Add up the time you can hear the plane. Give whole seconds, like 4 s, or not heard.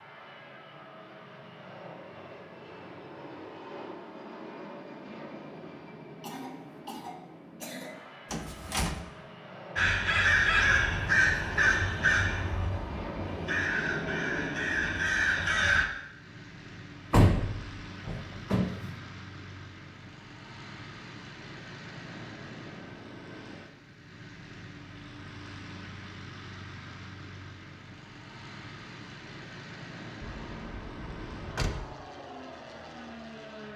34 s.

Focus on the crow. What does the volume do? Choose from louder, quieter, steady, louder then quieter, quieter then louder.
quieter then louder.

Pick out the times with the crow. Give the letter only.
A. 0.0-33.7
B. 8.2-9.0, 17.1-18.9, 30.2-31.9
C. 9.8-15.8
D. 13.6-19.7
C.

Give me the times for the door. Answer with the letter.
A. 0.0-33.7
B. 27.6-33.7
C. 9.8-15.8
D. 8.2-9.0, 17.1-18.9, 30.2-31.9
D.